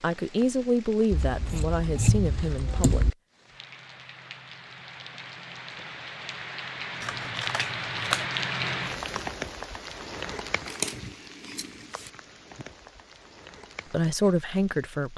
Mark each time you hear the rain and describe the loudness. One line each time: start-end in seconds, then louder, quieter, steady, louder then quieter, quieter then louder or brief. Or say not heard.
0.0-15.1 louder then quieter.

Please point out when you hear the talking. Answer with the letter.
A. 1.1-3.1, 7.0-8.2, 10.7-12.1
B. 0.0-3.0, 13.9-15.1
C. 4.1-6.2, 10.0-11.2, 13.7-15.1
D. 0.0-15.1
B.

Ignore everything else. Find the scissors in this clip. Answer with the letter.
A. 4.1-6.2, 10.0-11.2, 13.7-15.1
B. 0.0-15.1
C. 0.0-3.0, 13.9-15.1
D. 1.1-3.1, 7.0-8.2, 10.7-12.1
D.